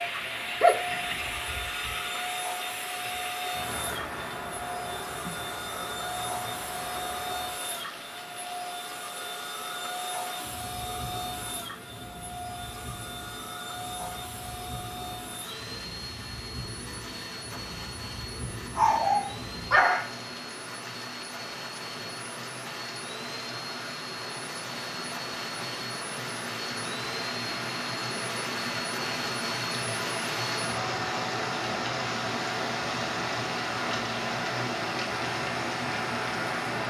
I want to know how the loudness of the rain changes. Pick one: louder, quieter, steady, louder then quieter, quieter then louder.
quieter then louder.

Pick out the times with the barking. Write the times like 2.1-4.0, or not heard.
0.6-1.9, 18.8-20.1.